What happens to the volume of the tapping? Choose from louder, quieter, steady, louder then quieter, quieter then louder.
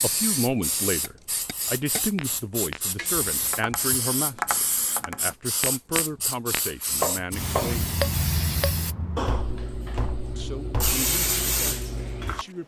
louder then quieter.